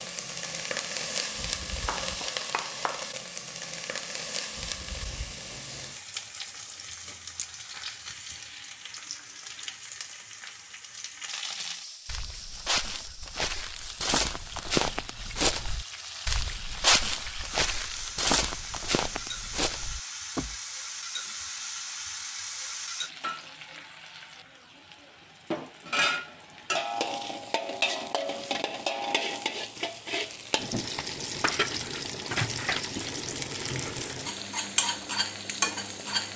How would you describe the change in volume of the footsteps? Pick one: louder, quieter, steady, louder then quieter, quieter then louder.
louder then quieter.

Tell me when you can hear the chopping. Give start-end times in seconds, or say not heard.
not heard.